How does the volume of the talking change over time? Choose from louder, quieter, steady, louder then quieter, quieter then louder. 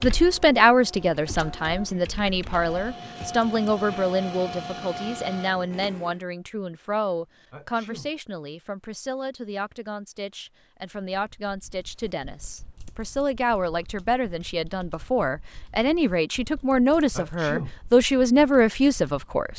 quieter then louder.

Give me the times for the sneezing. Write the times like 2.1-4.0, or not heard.
7.5-8.1, 17.1-17.8.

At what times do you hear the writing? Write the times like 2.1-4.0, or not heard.
not heard.